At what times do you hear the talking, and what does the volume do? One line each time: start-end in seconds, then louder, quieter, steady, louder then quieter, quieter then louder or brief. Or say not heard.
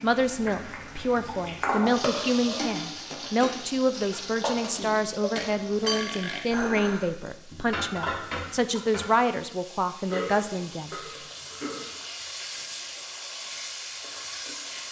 0.0-10.9 steady.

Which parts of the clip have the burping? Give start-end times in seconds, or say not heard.
1.9-2.7, 5.3-6.4, 10.1-11.9.